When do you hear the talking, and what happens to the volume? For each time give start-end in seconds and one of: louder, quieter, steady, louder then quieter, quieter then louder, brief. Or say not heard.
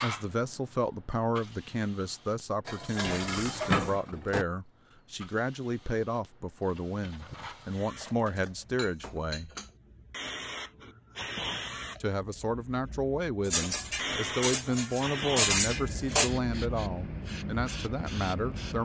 0.0-9.5 steady
12.0-18.8 steady.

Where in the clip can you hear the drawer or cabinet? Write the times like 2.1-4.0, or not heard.
not heard.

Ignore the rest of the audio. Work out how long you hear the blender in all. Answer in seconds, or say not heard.
not heard.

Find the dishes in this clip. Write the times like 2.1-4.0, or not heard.
2.6-4.5, 8.0-9.7, 13.4-16.3.